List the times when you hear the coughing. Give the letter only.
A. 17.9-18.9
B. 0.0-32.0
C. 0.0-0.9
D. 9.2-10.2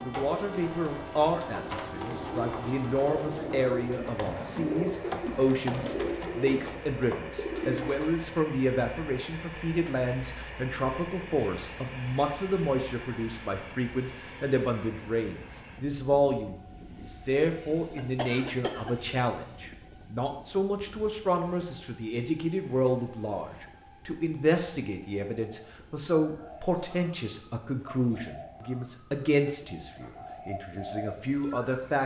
A.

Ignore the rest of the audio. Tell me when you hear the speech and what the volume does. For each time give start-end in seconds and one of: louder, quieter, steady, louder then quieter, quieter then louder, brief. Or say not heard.
0.0-32.0 steady.